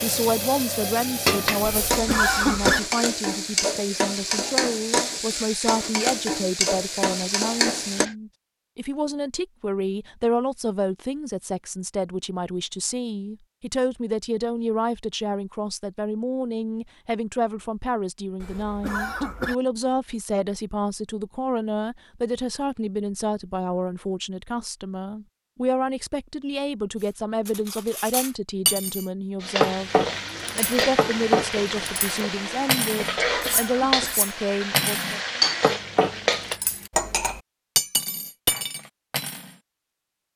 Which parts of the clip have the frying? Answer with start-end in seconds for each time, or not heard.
0.0-8.2, 29.4-36.6.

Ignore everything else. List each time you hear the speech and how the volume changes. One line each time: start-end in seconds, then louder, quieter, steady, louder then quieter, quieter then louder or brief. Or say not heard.
0.0-35.2 steady.